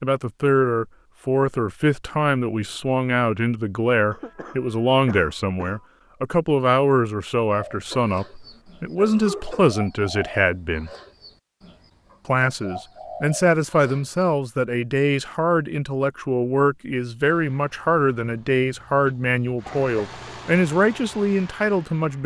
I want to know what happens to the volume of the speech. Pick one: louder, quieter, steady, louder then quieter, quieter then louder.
steady.